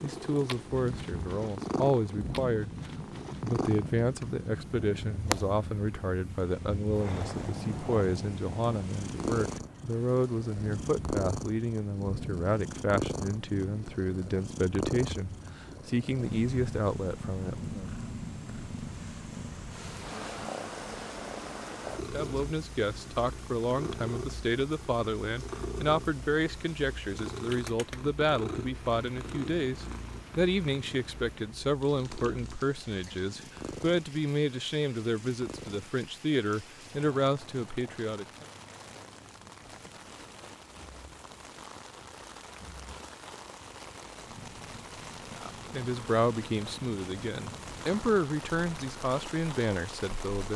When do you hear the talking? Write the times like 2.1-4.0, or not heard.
0.0-2.7, 3.4-17.9, 22.1-38.5, 45.4-50.5.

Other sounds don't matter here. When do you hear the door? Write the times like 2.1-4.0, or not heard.
not heard.